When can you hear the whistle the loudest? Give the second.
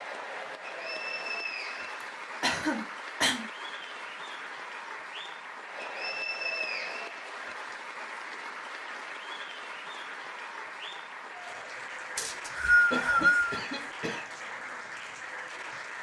13 s.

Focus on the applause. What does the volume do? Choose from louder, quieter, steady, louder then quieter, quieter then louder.
steady.